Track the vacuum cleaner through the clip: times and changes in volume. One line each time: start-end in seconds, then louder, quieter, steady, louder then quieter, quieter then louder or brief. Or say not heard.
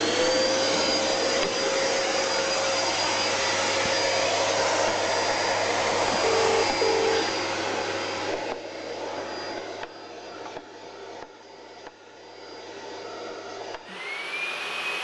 0.0-14.9 quieter.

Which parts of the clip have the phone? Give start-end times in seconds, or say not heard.
5.8-7.2.